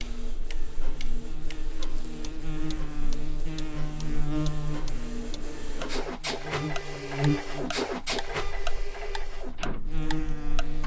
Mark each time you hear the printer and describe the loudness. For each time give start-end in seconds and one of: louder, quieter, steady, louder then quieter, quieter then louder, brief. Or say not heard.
0.0-10.8 louder then quieter.